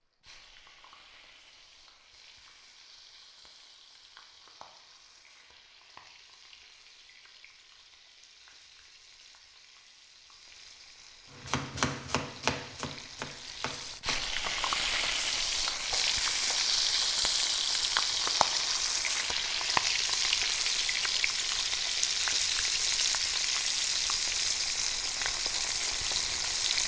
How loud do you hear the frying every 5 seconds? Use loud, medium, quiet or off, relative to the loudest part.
quiet, quiet, medium, loud, loud, loud.